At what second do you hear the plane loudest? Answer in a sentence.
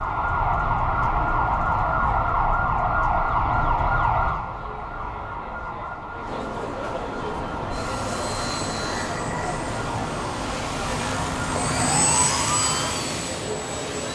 The volume of the plane peaks at 12 seconds.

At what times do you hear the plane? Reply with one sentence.
The plane can be heard from 7.2 to 14.1 s.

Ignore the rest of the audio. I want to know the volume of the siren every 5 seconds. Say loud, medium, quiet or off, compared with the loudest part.
loud, medium, medium.